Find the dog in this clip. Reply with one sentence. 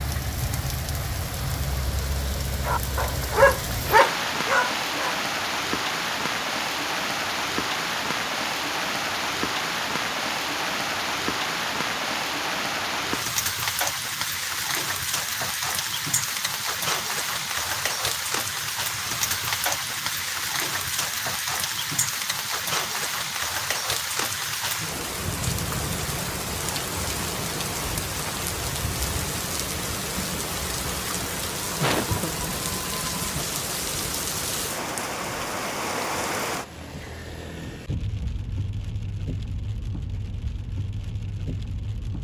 The dog can be heard from 2.6 to 5.2 s.